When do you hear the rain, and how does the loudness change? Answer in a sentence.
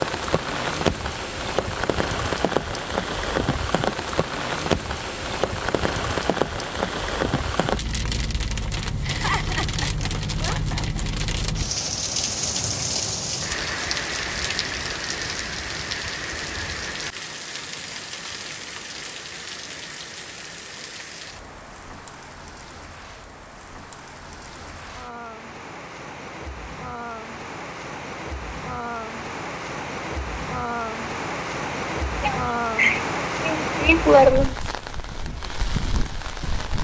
The rain can be heard from 0.0 to 36.7 s, getting quieter then louder.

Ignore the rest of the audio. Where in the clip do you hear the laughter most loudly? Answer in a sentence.
The volume of the laughter peaks at 34 seconds.